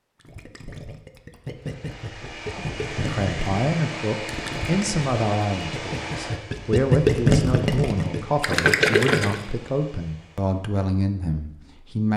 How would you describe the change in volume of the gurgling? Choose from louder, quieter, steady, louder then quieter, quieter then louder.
louder.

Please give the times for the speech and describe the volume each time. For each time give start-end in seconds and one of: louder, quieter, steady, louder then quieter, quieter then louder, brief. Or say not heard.
2.5-12.1 steady.